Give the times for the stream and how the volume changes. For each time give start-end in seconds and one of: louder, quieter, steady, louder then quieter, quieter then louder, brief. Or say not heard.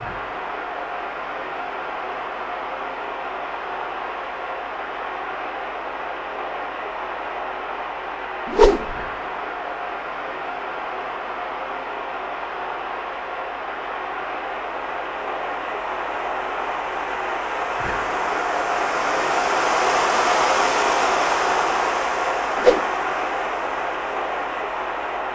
0.0-25.3 louder.